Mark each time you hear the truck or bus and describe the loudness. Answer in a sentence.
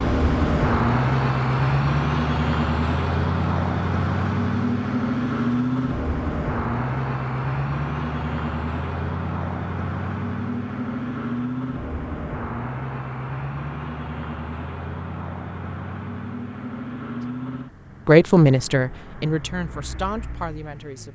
The truck or bus can be heard from 0.0 to 21.1 s, getting quieter.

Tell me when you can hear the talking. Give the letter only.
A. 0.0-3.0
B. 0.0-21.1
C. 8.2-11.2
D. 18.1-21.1
D.